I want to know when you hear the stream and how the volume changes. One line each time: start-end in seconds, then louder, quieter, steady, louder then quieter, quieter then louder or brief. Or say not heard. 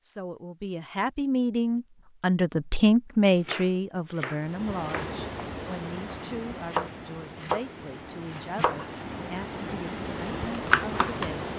4.3-11.5 quieter then louder.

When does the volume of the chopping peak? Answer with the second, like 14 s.
11 s.